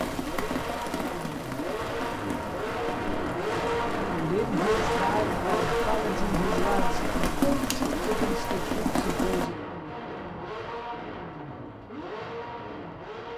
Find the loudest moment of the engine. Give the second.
5 s.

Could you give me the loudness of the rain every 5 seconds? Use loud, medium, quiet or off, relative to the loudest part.
medium, loud, off.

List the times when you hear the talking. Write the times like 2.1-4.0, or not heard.
4.2-9.6.